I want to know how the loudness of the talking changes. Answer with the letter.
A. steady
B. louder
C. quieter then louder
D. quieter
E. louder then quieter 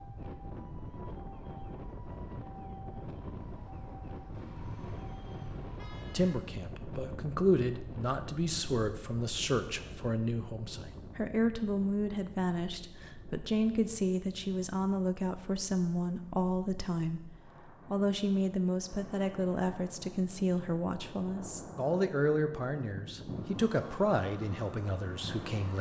A.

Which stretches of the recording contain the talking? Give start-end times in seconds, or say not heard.
6.1-25.7.